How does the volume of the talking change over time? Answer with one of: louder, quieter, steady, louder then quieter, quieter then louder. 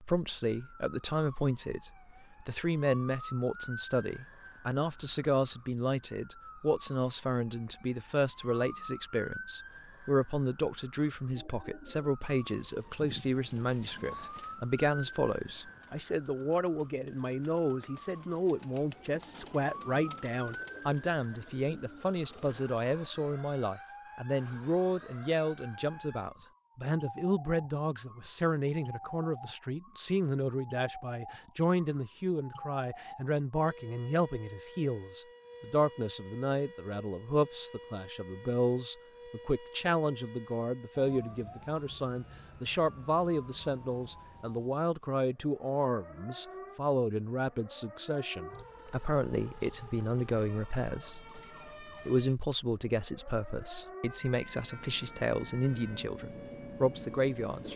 steady.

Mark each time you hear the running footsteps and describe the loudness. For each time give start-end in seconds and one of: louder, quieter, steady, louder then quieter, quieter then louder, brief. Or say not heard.
not heard.